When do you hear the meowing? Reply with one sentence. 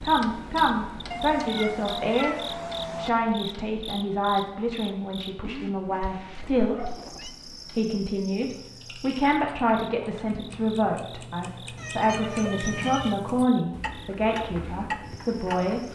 You can hear the meowing from 1.1 to 3.1 s, from 6.0 to 7.3 s and from 11.8 to 13.2 s.